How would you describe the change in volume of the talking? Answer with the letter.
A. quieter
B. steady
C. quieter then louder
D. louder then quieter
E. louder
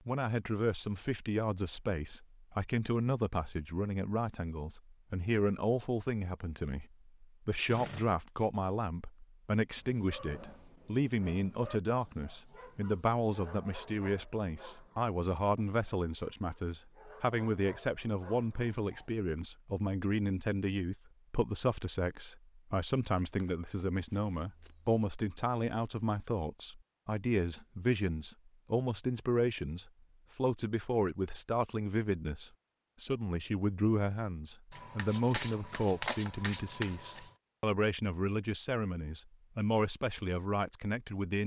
B.